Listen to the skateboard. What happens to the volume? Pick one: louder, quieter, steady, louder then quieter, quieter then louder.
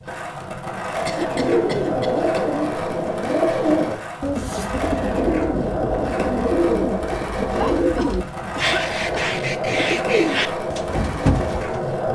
steady.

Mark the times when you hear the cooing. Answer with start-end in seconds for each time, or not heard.
1.1-11.8.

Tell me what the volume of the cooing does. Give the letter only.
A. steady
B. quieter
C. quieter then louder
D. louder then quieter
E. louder
A.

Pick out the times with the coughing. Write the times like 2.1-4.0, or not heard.
1.1-2.4, 7.5-9.3.